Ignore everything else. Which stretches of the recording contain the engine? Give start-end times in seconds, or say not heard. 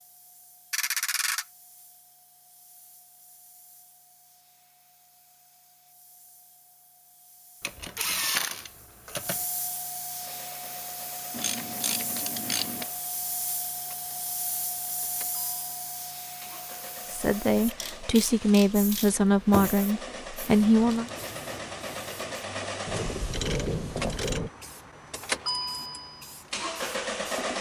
10.2-27.5.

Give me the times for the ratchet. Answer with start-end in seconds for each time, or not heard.
0.7-1.4, 7.6-9.4, 11.3-12.8, 17.8-19.8, 22.9-24.5.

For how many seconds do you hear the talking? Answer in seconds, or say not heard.
4 s.